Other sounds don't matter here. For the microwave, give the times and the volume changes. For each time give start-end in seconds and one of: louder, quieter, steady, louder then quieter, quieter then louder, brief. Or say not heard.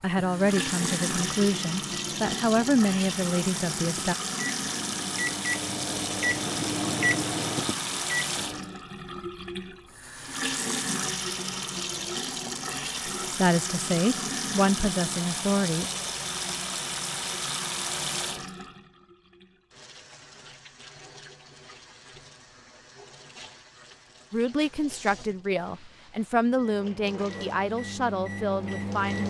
0.1-8.8 louder
26.5-29.2 brief.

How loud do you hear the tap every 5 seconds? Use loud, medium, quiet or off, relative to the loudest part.
loud, loud, loud, loud, quiet, quiet.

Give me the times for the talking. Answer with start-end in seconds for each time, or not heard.
0.0-4.2, 13.3-15.9, 24.3-29.2.